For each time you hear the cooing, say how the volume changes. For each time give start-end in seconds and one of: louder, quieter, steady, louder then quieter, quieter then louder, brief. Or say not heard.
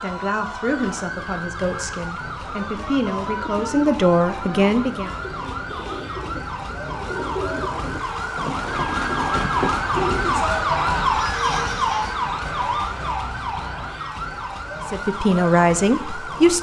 2.4-10.6 louder.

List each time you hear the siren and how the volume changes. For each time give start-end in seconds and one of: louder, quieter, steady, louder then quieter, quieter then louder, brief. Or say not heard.
0.0-16.5 louder then quieter.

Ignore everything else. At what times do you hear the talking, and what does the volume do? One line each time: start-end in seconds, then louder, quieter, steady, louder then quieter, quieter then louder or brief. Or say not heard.
0.0-5.1 louder
14.8-16.5 brief.